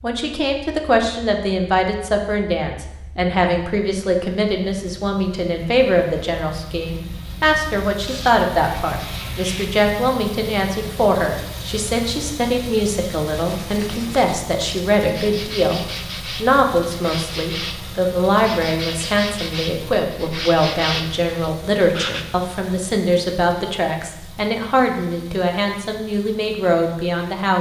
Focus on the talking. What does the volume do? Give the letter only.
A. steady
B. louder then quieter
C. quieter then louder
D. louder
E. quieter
A.